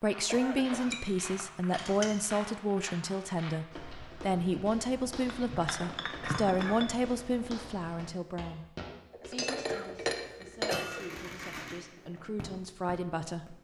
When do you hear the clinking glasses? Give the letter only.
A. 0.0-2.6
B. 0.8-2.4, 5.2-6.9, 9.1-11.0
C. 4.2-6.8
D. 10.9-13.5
B.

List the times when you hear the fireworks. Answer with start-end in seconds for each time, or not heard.
10.9-13.5.